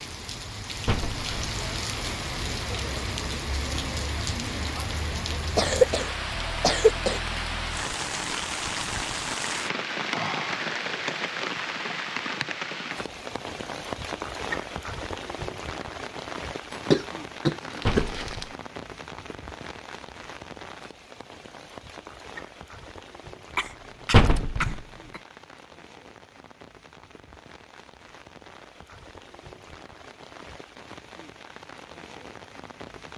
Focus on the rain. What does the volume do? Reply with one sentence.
The loudness of the rain goes down.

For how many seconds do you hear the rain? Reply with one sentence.
You can hear the rain for 33 seconds altogether.